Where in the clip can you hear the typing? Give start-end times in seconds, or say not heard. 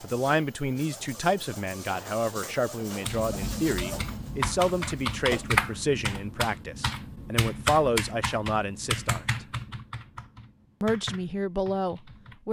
3.0-12.4.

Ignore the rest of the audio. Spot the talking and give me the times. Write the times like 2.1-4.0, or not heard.
0.0-9.2, 10.8-12.4.